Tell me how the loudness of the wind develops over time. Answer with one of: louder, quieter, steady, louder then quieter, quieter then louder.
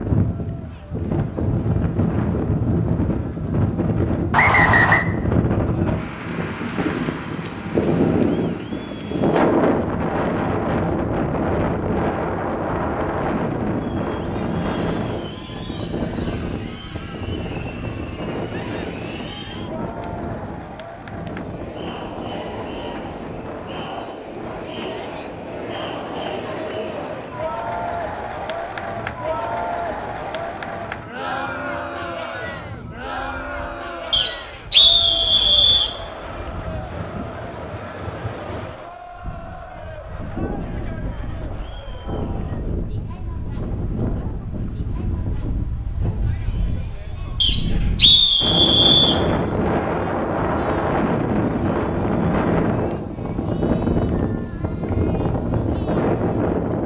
quieter then louder.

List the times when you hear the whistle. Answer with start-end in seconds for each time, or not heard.
4.3-5.0, 34.1-36.0, 47.4-49.2.